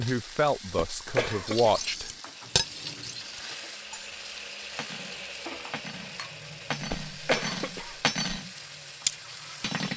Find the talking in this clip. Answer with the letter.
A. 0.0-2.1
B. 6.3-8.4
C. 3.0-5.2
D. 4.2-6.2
A.